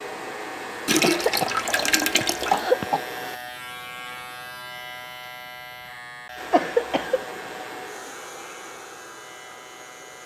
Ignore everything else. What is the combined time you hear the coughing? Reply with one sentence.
You can hear the coughing for 3 seconds altogether.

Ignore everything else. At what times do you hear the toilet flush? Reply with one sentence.
The toilet flush can be heard from 0.8 to 2.6 s.